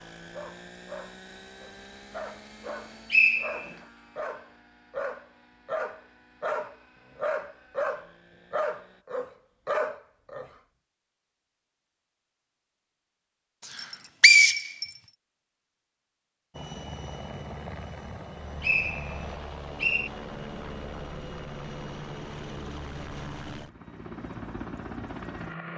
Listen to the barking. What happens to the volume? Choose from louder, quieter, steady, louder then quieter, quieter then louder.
louder.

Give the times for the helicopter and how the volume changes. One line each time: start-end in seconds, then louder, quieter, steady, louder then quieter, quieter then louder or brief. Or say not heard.
0.0-9.1 quieter
16.5-25.7 steady.